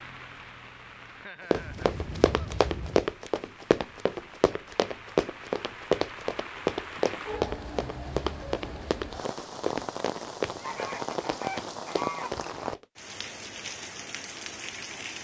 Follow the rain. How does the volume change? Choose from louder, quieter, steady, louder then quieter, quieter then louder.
louder.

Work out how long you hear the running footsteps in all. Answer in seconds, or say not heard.
11 s.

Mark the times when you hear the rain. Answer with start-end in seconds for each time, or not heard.
0.0-15.1.